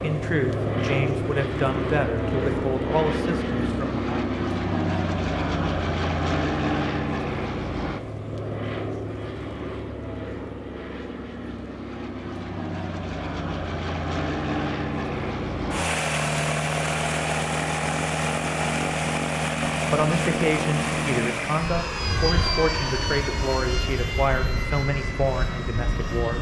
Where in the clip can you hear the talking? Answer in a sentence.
You can hear the talking from 0.0 to 4.2 s and from 19.9 to 26.3 s.